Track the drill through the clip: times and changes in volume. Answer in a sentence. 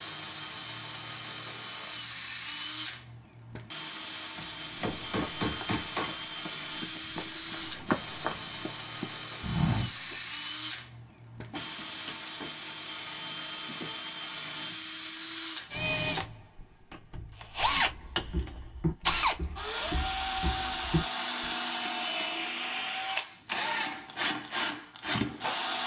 The drill can be heard from 0.0 to 25.8 s, at a steady volume.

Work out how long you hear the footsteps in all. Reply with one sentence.
You can hear the footsteps for 9 seconds altogether.